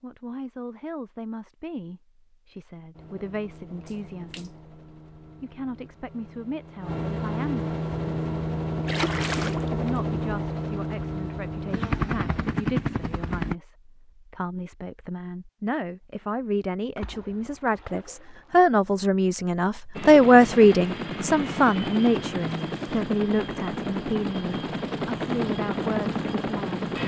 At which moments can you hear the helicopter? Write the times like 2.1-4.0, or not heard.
2.9-13.6, 19.9-27.0.